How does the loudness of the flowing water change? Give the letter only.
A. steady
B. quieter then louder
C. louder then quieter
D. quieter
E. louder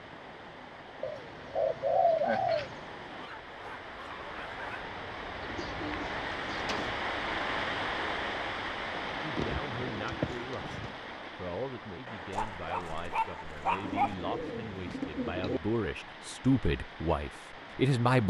C.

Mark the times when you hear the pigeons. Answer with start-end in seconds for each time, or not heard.
1.0-2.9, 5.4-7.0, 9.3-10.9, 13.8-15.6.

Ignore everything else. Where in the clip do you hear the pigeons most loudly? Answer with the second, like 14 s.
2 s.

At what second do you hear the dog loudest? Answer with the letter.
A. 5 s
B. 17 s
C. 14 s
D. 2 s
C.